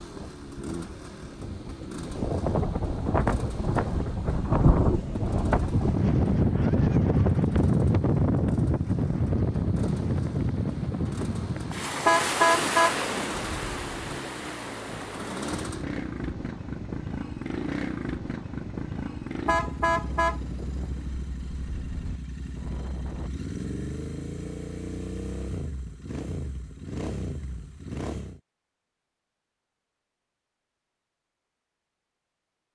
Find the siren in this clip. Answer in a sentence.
The siren can't be heard in this clip.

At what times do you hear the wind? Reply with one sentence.
You can hear the wind from 0.0 to 23.3 s.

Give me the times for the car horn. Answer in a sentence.
The car horn can be heard from 12.1 to 13.9 s and from 19.4 to 20.4 s.